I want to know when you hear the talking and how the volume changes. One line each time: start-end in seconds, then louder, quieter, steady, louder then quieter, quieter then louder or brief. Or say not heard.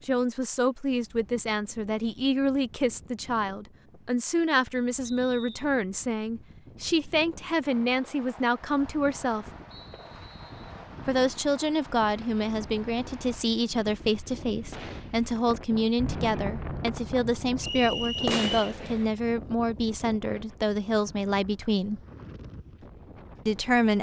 0.1-9.4 steady
11.1-22.0 steady
23.4-23.9 brief.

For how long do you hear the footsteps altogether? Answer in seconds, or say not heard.
not heard.